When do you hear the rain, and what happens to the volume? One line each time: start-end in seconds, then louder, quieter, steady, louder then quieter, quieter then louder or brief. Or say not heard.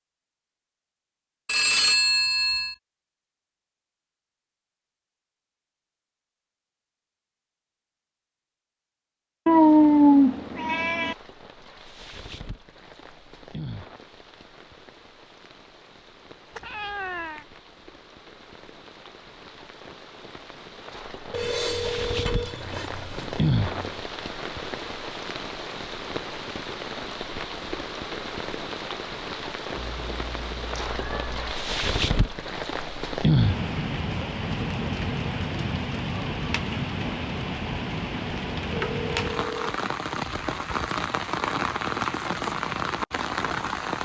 9.5-43.9 louder.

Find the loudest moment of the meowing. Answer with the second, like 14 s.
10 s.